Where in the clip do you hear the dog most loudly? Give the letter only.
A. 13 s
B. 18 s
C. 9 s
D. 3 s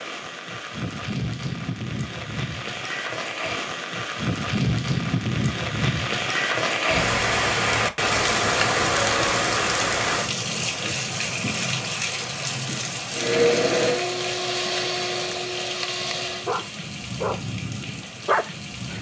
B.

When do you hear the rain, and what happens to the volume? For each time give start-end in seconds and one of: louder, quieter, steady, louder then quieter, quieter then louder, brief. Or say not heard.
0.0-18.9 louder then quieter.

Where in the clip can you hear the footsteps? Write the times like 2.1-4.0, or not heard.
not heard.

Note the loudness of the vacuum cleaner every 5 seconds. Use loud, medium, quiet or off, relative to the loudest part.
off, off, loud, medium.